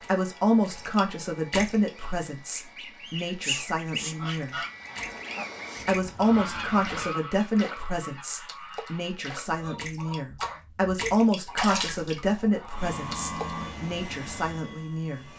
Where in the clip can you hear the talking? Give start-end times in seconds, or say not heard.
0.0-4.7, 5.8-15.3.